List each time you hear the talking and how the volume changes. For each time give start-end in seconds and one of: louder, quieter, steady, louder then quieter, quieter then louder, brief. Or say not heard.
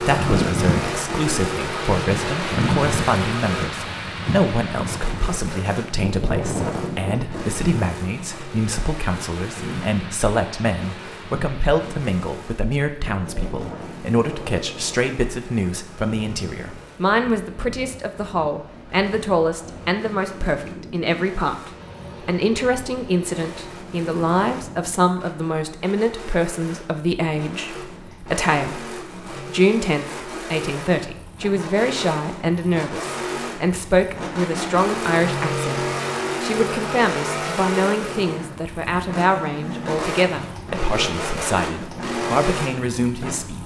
0.0-43.6 steady.